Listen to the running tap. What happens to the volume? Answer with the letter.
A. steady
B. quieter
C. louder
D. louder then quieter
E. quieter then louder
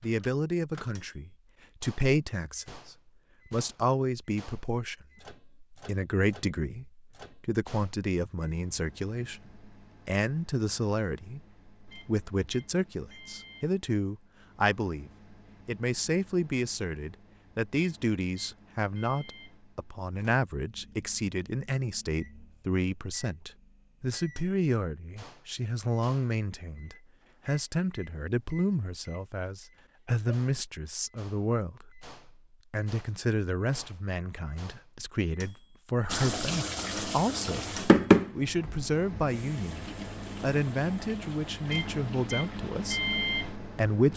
D.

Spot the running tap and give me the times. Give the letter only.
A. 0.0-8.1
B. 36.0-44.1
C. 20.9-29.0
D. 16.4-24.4
B.